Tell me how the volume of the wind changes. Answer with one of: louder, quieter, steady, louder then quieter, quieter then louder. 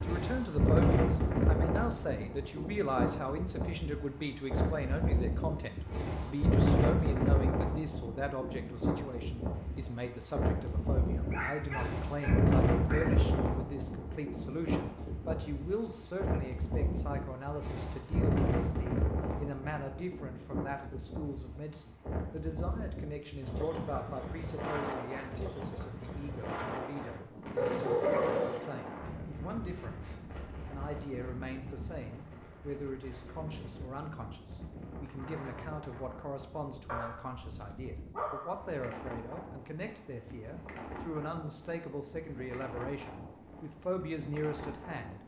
quieter.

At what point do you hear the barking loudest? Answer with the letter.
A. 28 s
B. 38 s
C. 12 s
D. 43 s
A.